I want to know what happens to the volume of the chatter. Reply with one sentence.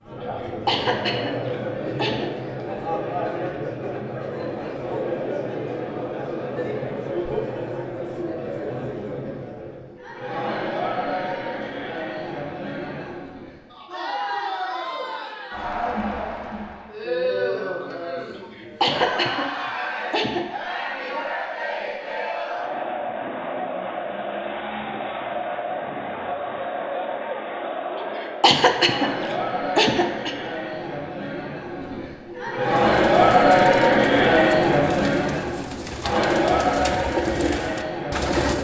The loudness of the chatter goes up.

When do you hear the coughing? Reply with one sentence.
You can hear the coughing from 0.2 to 2.3 s, from 18.4 to 20.4 s and from 27.9 to 30.4 s.